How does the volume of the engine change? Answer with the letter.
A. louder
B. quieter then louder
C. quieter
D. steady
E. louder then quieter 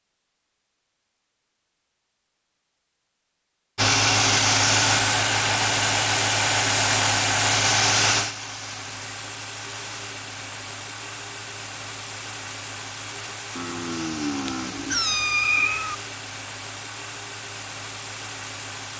C.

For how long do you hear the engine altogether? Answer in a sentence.
The engine can be heard for 15 seconds in total.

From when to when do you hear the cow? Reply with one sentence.
You can hear the cow from 13.6 to 15.1 s.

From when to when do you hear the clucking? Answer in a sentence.
You can't hear the clucking here.